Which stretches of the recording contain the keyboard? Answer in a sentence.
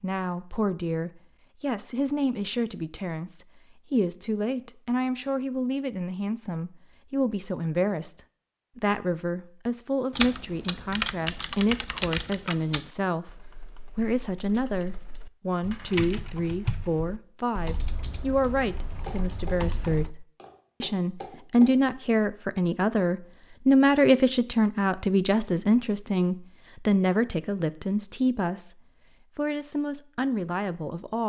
You can hear the keyboard from 10.1 to 20.1 s.